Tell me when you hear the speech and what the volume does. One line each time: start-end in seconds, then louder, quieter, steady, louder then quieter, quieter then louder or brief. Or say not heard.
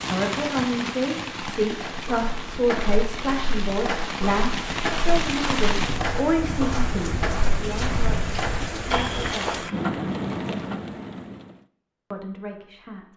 0.1-9.6 quieter
12.1-13.1 brief.